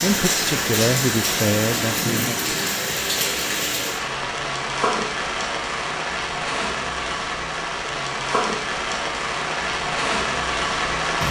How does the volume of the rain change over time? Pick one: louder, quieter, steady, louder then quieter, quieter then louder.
steady.